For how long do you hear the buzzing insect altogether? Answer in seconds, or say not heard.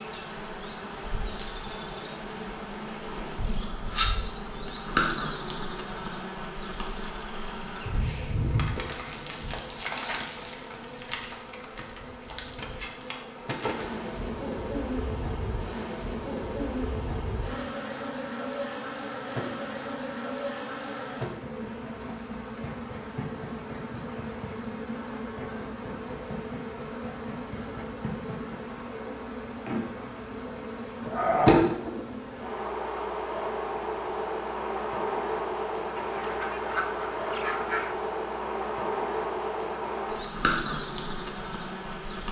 42 s.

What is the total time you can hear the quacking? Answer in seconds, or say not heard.
2 s.